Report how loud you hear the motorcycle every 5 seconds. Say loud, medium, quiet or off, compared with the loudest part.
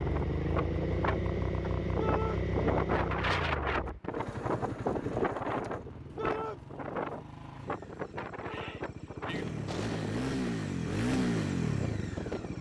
loud, medium, loud.